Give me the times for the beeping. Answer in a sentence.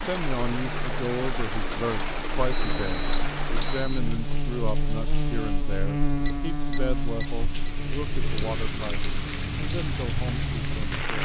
You can hear the beeping from 2.5 to 4.0 s and from 6.2 to 7.8 s.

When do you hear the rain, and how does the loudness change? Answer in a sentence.
You can hear the rain from 0.0 to 11.1 s, getting quieter then louder.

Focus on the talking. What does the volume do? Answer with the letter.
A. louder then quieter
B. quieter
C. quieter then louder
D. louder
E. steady
B.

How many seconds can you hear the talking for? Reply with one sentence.
You can hear the talking for 11 seconds altogether.